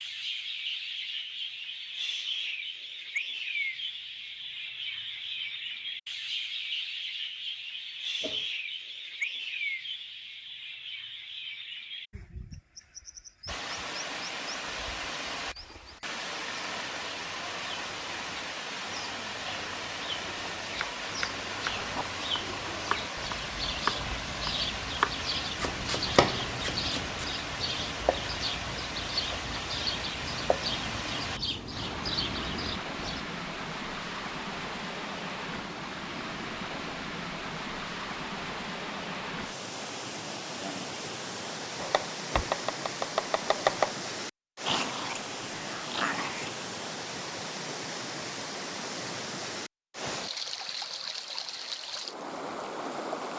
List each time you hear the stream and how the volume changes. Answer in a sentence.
You can hear the stream from 13.4 to 53.3 s, at a steady volume.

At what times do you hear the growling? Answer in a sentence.
You can hear the growling from 44.6 to 46.6 s.